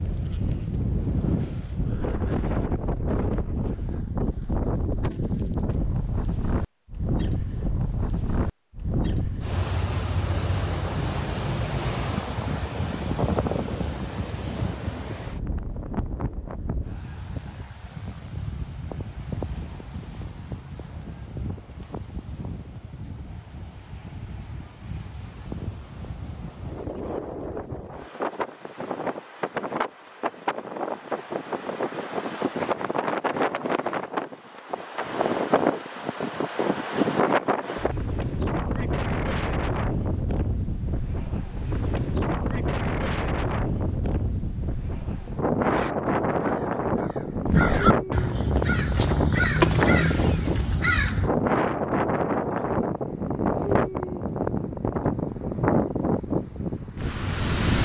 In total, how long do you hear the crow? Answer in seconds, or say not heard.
6 s.